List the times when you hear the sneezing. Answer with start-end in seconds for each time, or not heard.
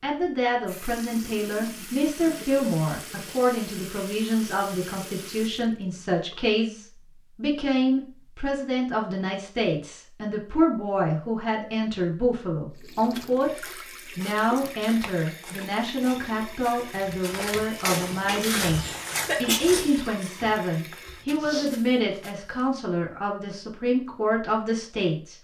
18.2-19.6.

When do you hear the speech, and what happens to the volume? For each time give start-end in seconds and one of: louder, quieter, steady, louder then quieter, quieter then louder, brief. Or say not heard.
0.0-25.4 steady.